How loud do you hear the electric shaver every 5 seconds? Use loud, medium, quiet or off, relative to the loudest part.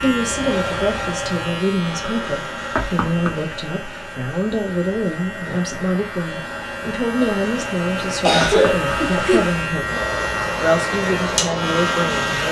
medium, medium, loud.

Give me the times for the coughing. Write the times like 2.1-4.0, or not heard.
7.2-8.8.